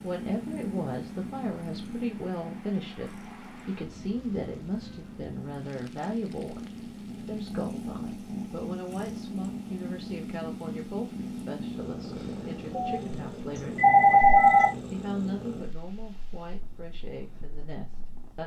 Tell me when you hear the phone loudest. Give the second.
14 s.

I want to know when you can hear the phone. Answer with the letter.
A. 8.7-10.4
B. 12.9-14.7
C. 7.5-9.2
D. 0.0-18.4
B.